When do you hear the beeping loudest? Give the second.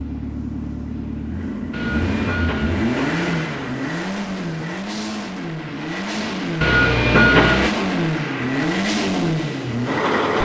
7 s.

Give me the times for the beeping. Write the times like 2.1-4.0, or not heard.
1.7-3.8, 6.6-7.7.